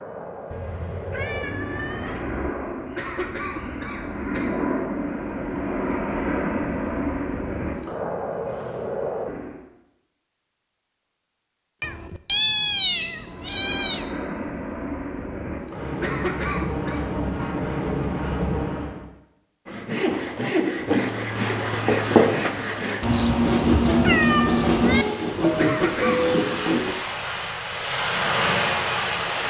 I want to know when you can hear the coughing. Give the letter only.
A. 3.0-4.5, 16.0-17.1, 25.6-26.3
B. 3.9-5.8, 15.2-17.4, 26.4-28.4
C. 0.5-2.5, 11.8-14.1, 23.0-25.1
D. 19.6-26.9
A.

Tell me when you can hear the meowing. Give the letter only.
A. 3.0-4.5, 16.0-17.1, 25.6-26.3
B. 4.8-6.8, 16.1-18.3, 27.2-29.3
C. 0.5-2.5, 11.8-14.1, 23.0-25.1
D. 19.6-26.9
C.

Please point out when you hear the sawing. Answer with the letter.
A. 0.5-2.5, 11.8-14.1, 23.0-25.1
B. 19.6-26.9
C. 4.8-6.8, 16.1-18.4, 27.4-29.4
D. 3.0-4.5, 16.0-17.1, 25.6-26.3
B.